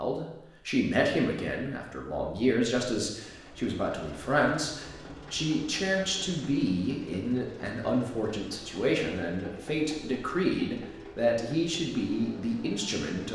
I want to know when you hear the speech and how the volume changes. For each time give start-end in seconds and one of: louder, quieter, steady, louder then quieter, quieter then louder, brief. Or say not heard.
0.0-13.3 steady.